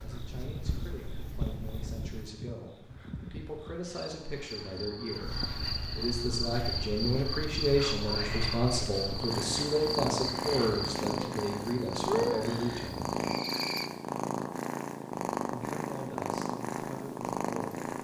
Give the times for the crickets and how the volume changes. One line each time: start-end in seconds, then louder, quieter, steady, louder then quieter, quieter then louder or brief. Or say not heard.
0.0-13.9 louder.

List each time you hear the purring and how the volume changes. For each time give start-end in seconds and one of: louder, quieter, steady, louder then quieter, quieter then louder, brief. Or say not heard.
0.0-2.3 brief
5.2-17.9 louder.